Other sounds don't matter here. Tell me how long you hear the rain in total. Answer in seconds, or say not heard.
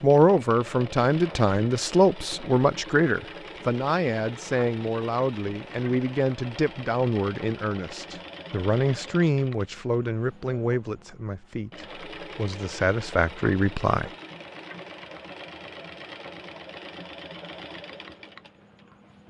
not heard.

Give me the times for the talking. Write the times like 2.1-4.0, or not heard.
0.0-14.1.